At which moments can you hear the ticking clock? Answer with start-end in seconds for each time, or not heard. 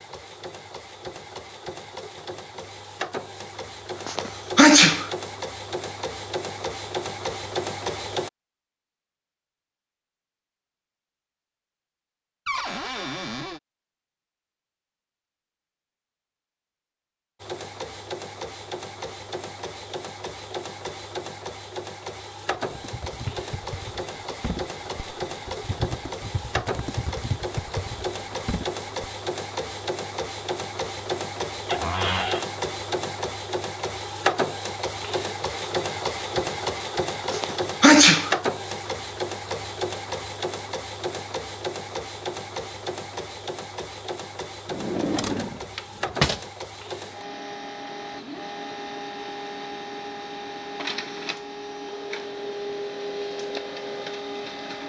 not heard.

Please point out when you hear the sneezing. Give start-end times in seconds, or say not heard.
4.0-5.1, 37.3-38.4.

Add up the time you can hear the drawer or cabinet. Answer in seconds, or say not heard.
4 s.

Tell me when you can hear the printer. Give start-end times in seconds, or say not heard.
0.0-8.3, 17.4-54.8.